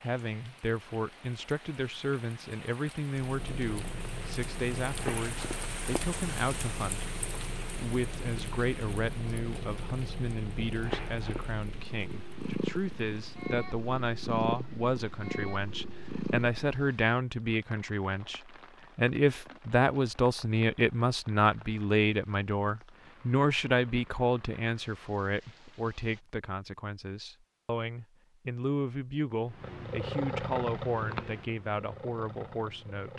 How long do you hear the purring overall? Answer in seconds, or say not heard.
17 s.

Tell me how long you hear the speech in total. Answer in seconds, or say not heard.
33 s.